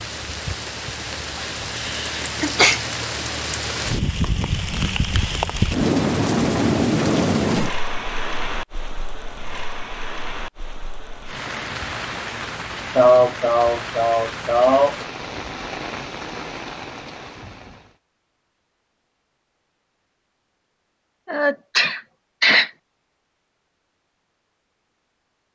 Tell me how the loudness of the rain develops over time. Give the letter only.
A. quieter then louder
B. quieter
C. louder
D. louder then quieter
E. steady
D.